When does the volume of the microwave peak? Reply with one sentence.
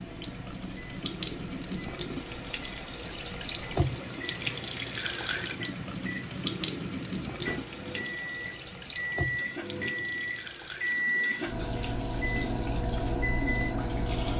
The volume of the microwave peaks at 11 seconds.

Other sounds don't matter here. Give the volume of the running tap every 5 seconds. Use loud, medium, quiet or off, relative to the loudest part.
loud, loud, medium.